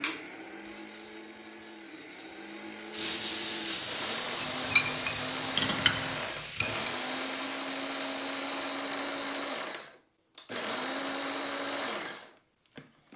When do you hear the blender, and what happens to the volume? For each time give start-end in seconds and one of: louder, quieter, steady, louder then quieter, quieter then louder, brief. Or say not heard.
0.0-13.1 louder.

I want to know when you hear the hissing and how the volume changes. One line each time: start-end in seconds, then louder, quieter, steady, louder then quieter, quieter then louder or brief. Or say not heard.
0.0-8.8 louder then quieter.